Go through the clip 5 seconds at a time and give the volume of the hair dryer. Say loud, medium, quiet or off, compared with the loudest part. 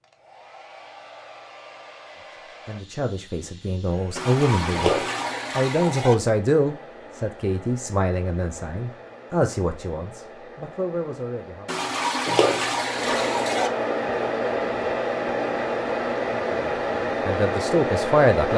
quiet, quiet, loud, loud.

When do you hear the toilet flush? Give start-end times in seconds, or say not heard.
4.2-6.2, 11.7-13.7.